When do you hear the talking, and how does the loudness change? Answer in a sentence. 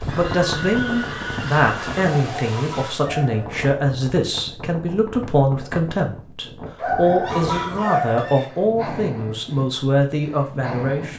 You can hear the talking from 0.1 to 11.1 s, at a steady volume.